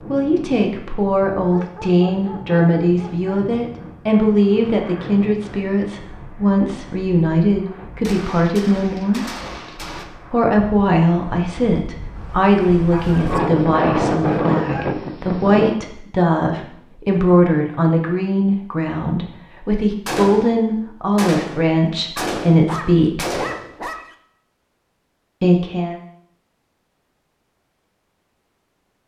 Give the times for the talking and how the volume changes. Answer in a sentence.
The talking can be heard from 0.1 to 9.3 s, at a steady volume; from 10.3 to 23.2 s, at a steady volume; and briefly from 25.4 to 26.0 s.